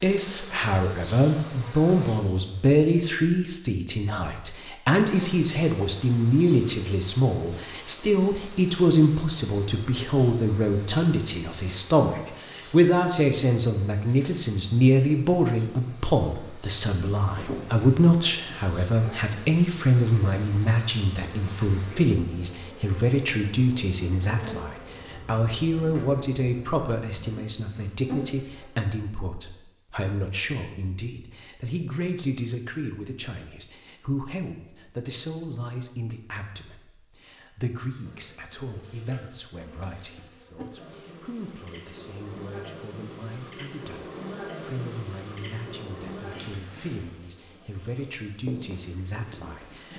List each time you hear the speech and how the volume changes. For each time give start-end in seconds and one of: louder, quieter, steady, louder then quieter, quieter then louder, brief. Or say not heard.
0.0-49.9 quieter.